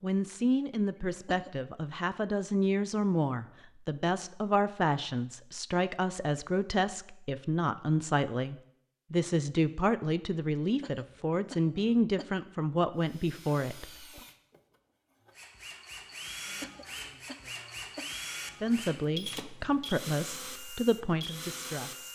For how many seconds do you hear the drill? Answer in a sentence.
The drill can be heard for 9 seconds in total.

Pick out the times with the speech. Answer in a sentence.
The speech can be heard from 0.0 to 14.2 s and from 18.5 to 22.1 s.